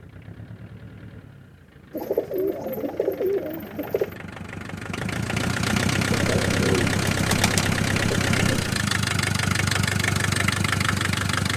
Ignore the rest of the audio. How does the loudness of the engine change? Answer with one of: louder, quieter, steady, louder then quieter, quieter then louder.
louder.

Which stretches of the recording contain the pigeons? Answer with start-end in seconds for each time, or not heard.
1.9-4.2, 6.1-8.8.